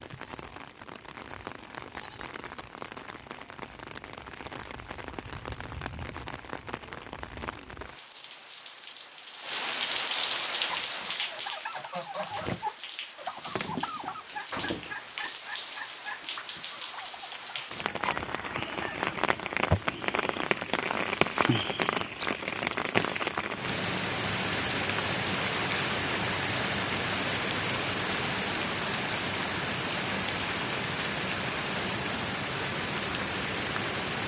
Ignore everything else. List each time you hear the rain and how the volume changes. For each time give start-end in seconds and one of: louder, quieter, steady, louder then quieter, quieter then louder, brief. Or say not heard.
0.0-34.2 louder.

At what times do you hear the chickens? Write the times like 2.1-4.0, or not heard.
10.5-18.9.